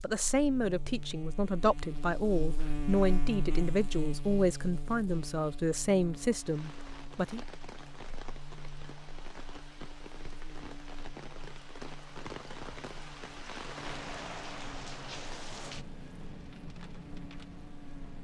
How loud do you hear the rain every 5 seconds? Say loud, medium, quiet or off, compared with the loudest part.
off, medium, loud, loud.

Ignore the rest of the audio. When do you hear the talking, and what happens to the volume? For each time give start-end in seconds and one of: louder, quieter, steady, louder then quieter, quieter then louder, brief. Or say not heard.
0.0-7.4 steady.